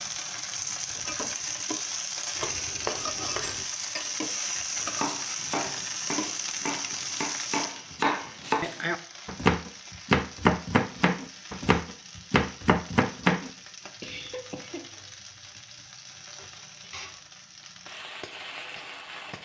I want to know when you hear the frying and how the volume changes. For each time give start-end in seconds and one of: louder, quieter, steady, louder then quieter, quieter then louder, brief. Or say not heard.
0.0-19.4 quieter.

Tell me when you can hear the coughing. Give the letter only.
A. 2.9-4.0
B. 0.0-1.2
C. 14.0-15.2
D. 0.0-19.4
C.